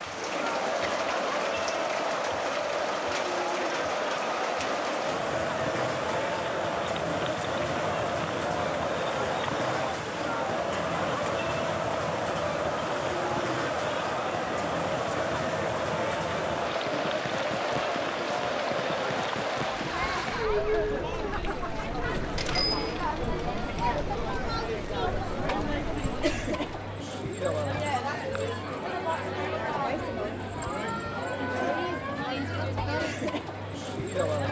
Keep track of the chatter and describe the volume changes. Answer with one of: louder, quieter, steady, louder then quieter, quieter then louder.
steady.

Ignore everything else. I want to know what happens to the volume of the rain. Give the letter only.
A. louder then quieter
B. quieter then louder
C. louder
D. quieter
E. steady
D.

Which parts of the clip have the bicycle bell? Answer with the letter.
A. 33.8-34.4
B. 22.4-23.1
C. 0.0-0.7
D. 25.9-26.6
B.